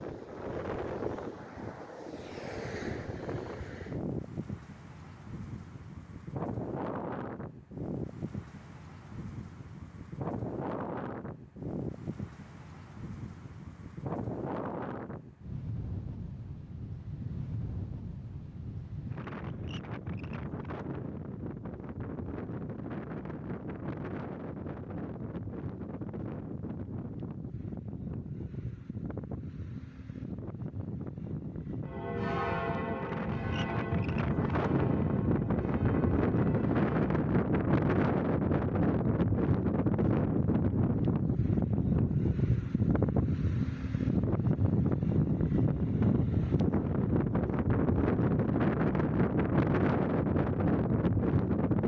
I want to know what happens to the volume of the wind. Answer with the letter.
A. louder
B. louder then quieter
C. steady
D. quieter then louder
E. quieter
A.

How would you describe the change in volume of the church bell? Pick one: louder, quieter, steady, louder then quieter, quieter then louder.
quieter.